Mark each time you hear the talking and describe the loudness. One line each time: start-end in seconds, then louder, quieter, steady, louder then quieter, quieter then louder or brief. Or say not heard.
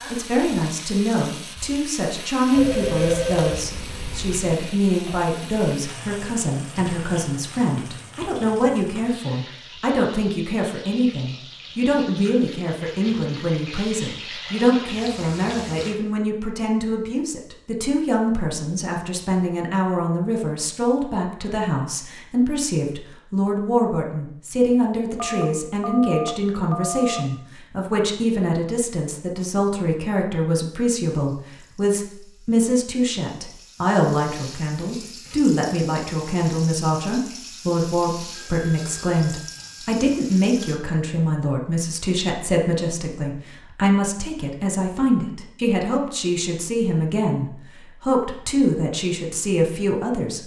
0.1-50.4 steady.